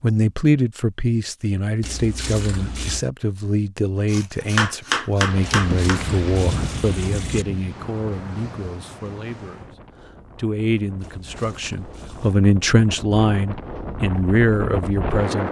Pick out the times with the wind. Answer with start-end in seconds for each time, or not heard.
5.2-15.4.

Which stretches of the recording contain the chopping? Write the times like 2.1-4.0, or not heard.
4.1-6.0.